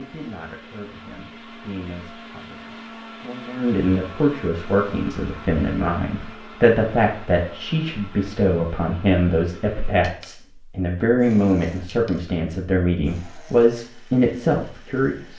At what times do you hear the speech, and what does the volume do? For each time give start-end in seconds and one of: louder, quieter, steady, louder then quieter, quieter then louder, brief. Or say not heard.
0.0-15.3 louder.